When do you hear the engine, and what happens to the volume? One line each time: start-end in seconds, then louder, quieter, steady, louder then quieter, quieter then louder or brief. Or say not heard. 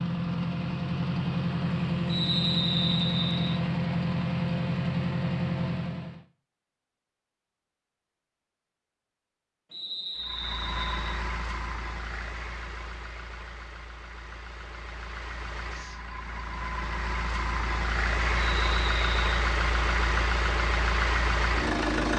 0.0-6.2 steady
10.2-22.1 quieter then louder.